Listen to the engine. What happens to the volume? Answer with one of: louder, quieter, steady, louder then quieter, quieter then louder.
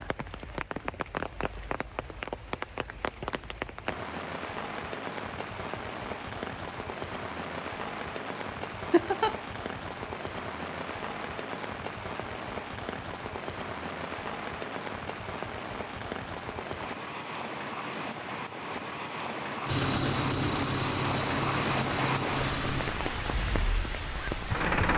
quieter.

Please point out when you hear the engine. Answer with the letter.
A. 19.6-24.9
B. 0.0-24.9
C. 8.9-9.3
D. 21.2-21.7
A.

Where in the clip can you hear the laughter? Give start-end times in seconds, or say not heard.
8.9-9.3.